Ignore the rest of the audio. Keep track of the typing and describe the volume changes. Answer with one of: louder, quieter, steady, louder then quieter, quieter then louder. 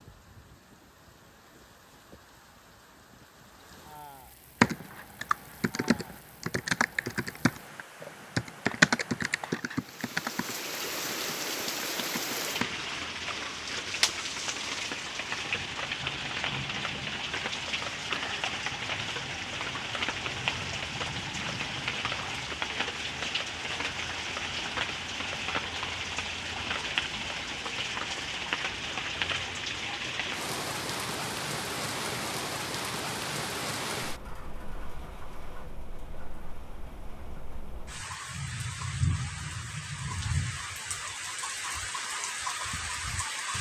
louder then quieter.